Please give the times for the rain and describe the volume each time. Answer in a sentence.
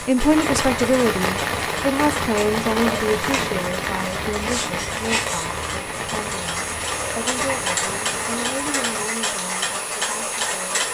You can hear the rain from 0.0 to 9.1 s, getting quieter.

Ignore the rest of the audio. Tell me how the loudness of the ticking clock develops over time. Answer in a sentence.
The volume of the ticking clock goes up.